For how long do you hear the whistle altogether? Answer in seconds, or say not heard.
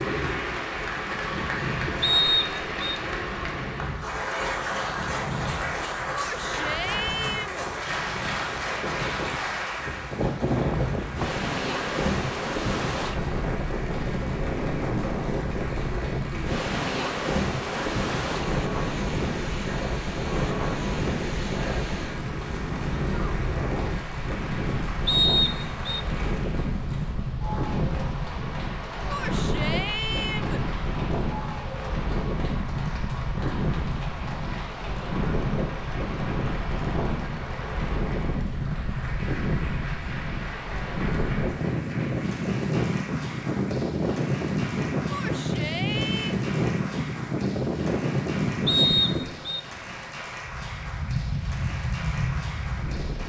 3 s.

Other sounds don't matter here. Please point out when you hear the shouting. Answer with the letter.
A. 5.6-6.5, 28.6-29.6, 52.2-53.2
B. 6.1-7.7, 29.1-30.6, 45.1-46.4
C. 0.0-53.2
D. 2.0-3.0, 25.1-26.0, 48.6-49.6
B.